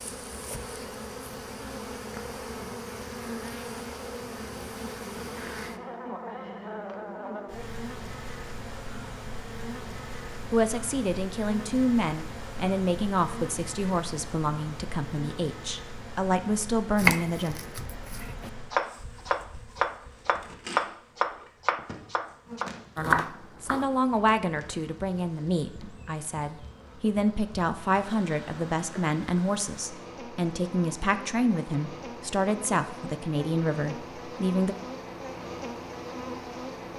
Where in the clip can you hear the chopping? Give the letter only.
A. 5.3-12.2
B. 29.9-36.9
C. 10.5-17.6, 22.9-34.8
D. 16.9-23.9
D.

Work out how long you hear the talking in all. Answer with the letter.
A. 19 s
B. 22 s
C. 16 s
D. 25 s
A.